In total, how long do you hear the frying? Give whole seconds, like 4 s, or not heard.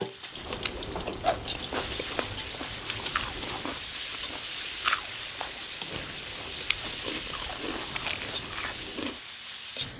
10 s.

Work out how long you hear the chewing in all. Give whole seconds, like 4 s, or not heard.
9 s.